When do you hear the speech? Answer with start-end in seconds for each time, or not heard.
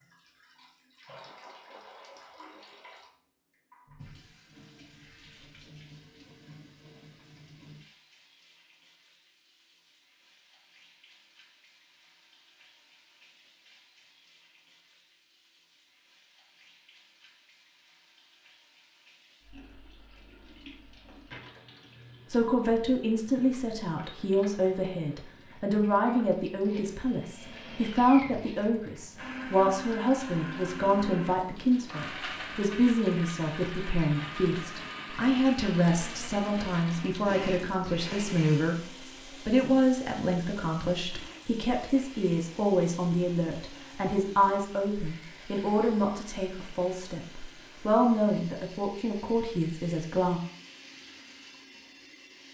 22.3-38.8, 39.5-50.4.